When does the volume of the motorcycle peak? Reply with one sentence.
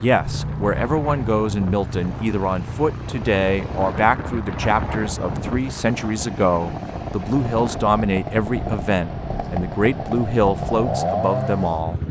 The volume of the motorcycle peaks at 11 seconds.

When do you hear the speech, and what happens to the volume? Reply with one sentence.
The speech can be heard from 0.0 to 12.0 s, at a steady volume.